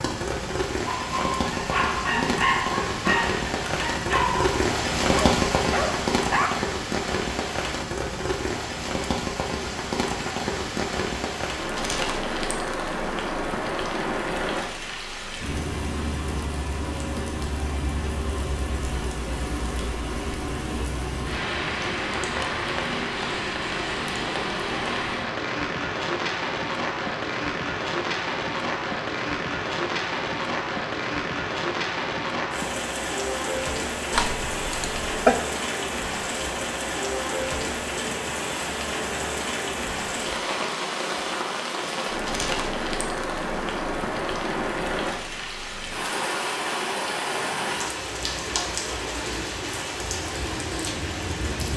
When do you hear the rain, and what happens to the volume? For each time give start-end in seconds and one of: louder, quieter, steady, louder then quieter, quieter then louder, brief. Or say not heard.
0.0-51.7 steady.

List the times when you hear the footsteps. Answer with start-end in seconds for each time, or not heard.
not heard.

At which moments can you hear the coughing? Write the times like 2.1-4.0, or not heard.
34.1-35.4.